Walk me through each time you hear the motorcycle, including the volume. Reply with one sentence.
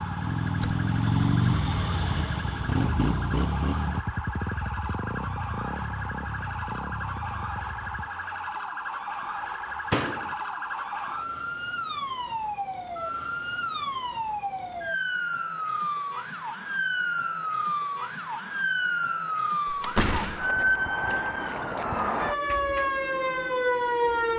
You can hear the motorcycle from 0.0 to 8.1 s, getting quieter.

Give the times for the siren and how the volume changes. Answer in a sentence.
You can hear the siren from 0.0 to 24.3 s, getting louder.